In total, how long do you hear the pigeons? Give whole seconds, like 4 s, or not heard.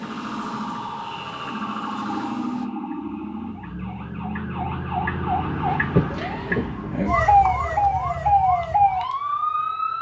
not heard.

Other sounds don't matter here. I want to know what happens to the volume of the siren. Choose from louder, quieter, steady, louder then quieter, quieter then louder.
louder.